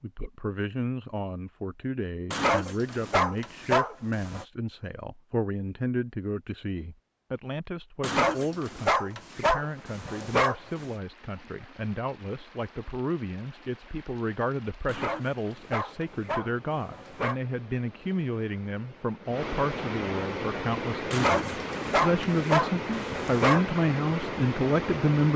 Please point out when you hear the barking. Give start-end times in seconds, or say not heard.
2.3-4.5, 8.0-10.9, 14.8-17.4, 21.1-23.6.